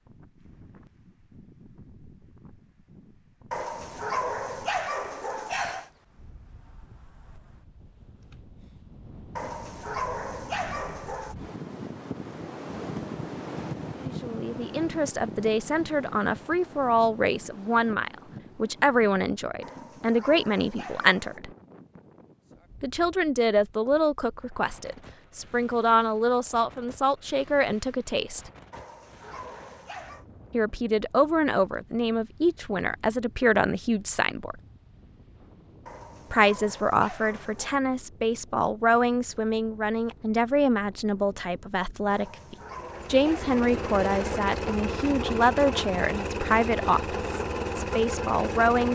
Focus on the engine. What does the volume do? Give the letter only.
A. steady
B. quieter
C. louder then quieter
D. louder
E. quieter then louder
A.